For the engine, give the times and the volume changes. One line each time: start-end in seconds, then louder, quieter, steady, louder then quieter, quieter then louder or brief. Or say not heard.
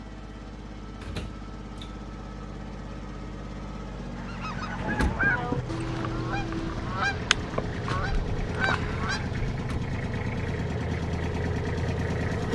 0.0-12.5 louder.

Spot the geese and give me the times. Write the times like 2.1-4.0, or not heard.
4.2-9.6.